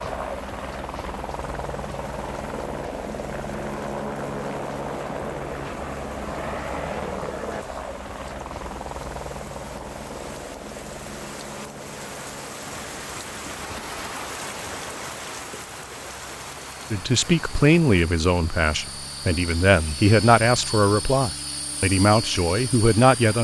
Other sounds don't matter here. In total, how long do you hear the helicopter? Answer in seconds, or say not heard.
23 s.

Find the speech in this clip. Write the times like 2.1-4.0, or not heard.
16.9-23.3.